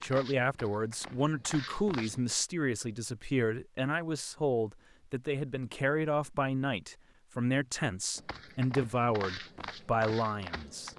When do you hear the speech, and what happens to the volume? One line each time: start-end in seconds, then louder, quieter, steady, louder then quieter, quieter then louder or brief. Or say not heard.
0.0-10.9 steady.